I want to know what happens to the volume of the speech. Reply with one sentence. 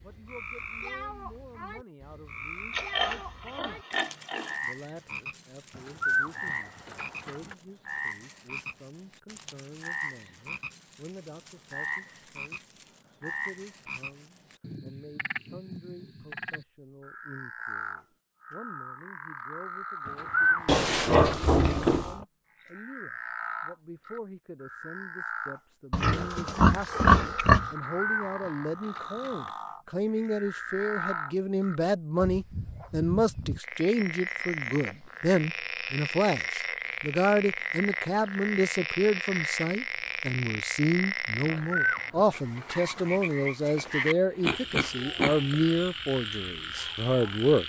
The loudness of the speech goes up.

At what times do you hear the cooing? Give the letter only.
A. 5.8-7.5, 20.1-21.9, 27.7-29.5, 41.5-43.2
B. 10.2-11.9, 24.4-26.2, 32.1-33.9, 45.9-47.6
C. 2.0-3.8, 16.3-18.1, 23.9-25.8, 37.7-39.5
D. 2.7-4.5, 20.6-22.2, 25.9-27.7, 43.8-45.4
A.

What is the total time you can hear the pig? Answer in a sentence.
The pig can be heard for 7 seconds in total.